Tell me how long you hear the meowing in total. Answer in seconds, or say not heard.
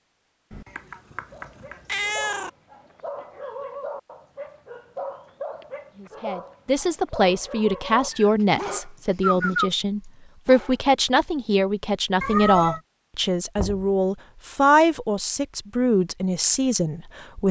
4 s.